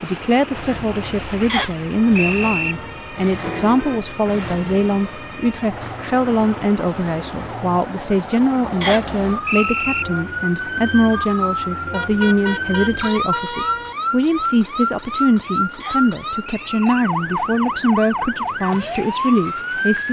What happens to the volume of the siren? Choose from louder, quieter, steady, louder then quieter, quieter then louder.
louder.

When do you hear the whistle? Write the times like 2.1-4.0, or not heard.
1.4-2.8, 8.8-10.1, 15.8-17.1.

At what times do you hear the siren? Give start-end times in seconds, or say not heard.
0.0-20.0.